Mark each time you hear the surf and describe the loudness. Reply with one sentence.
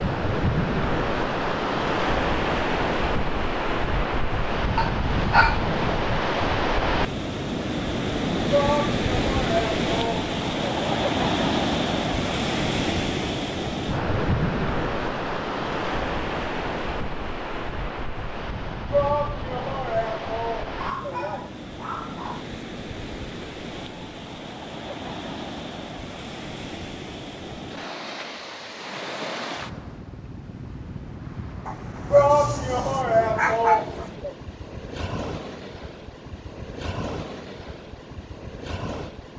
The surf can be heard from 0.0 to 39.3 s, getting quieter.